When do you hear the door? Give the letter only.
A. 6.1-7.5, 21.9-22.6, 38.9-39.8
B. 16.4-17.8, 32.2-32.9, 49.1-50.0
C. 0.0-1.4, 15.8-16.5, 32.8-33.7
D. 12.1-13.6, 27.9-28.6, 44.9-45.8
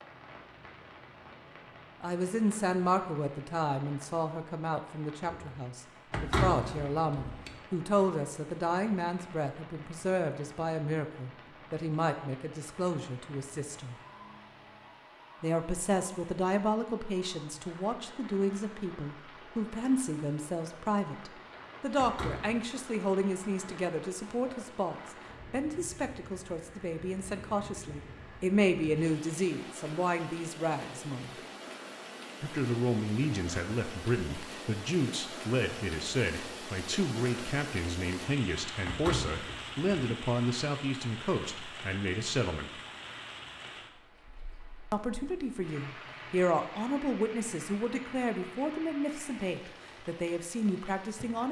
A.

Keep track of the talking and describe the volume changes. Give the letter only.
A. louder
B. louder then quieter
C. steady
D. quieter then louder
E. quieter
C.